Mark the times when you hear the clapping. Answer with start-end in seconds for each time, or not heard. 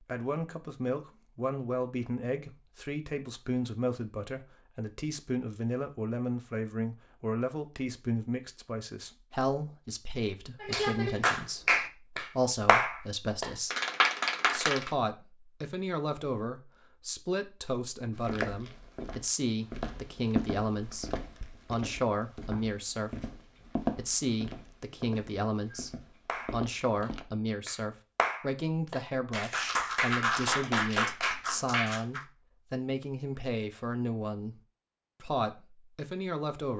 10.6-14.9, 26.2-32.2.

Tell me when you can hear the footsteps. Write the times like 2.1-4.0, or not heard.
18.1-27.2.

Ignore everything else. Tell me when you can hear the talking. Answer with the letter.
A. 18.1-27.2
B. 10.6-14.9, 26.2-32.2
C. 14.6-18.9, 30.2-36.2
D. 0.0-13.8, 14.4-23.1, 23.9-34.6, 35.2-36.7
D.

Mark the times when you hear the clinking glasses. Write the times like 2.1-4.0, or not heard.
not heard.